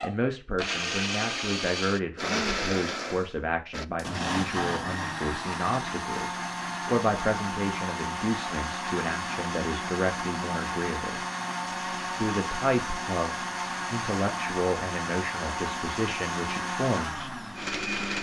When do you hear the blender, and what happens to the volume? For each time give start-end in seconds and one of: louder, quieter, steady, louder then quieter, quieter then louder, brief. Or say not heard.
0.0-18.1 steady.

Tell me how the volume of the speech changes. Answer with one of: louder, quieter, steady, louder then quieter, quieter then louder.
steady.